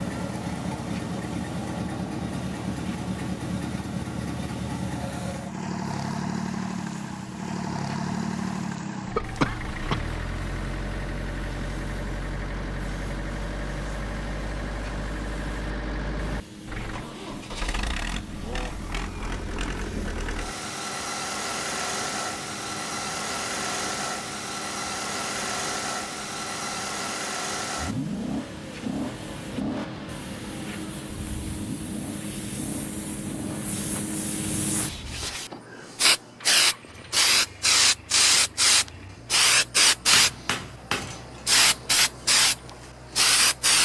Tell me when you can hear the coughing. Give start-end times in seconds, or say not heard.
9.2-10.1.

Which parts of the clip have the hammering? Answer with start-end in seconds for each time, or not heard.
40.1-41.2.